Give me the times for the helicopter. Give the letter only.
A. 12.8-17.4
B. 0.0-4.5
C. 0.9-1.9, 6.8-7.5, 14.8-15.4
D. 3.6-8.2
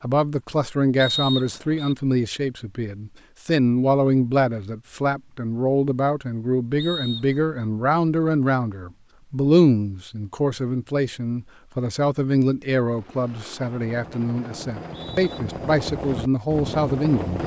A.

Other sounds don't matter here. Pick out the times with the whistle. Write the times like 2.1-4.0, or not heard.
0.9-1.9, 6.8-7.5, 14.8-15.4.